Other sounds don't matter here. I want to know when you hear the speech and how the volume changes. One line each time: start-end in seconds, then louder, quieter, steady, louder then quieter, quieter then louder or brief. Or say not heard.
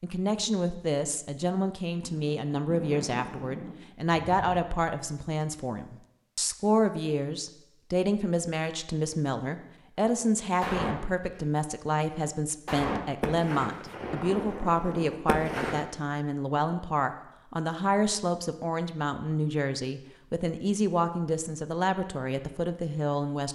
0.0-23.5 steady.